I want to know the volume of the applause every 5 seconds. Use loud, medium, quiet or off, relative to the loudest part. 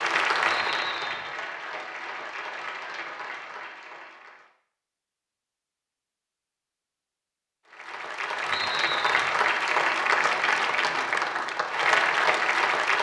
medium, loud, loud.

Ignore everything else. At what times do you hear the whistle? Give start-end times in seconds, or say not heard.
0.5-1.4, 8.5-9.3.